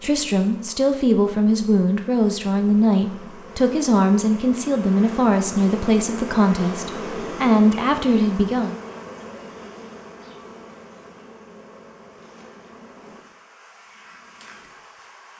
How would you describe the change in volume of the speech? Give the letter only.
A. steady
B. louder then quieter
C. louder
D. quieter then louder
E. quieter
A.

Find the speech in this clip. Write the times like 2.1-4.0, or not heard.
0.0-8.8.